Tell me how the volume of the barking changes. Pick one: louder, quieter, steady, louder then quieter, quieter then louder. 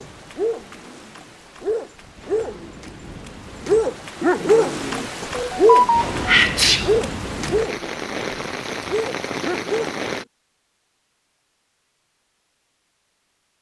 louder then quieter.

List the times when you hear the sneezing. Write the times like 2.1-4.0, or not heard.
5.3-7.0.